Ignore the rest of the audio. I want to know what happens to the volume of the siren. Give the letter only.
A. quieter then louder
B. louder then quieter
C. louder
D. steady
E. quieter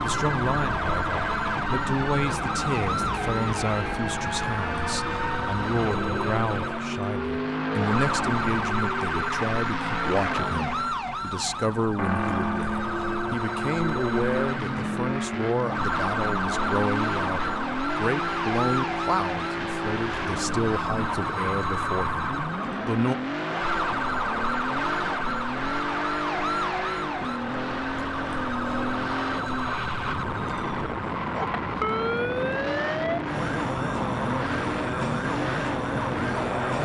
D.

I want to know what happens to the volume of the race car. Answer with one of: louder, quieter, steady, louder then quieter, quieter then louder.
steady.